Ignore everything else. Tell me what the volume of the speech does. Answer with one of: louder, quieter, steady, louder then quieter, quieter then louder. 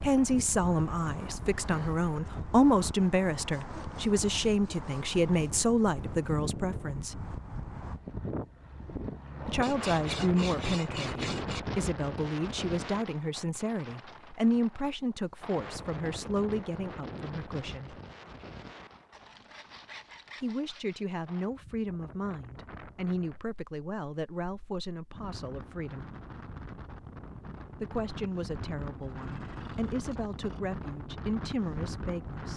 quieter.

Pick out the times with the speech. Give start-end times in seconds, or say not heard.
0.0-7.2, 9.4-17.9, 20.4-26.1, 27.8-32.5.